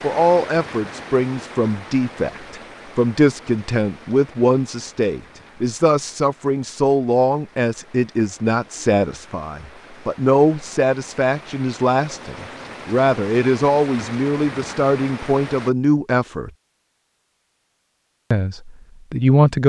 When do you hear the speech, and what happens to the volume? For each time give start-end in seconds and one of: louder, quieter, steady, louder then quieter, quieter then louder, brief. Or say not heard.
0.0-16.5 steady
18.3-19.6 brief.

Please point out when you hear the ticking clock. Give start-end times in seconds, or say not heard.
not heard.